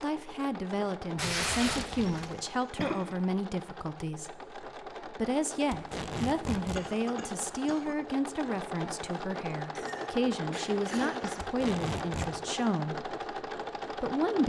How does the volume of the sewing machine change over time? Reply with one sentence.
The loudness of the sewing machine goes up.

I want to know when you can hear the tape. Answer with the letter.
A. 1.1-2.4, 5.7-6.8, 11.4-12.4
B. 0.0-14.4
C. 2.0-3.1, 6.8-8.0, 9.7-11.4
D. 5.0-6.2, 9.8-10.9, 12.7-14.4
A.